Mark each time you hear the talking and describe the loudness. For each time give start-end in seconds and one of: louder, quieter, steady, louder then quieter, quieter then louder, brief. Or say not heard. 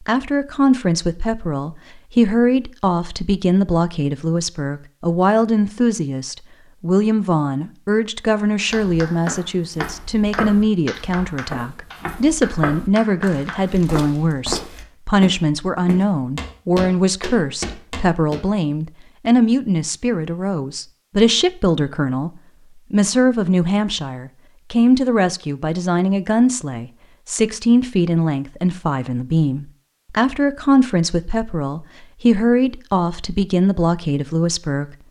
0.0-35.0 steady.